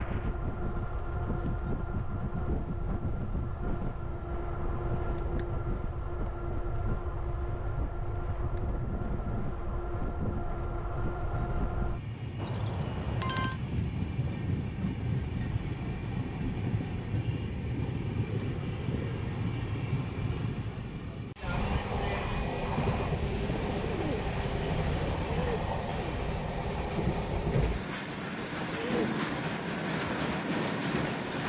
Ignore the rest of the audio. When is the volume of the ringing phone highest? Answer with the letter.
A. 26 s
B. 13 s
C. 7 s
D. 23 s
B.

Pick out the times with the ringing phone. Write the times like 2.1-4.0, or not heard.
12.3-13.6, 22.1-23.2.